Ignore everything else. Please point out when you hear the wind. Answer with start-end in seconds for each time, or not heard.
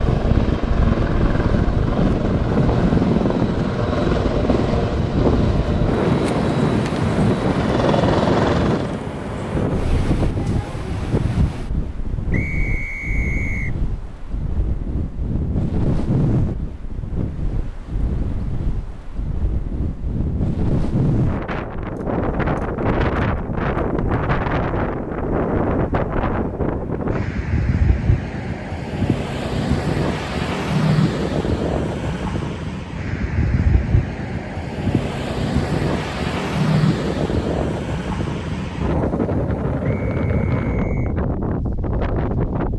0.0-42.7.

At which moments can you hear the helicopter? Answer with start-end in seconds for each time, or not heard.
0.0-9.0.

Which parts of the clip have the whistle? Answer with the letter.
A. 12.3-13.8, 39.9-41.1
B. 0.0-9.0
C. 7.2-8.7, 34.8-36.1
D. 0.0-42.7
A.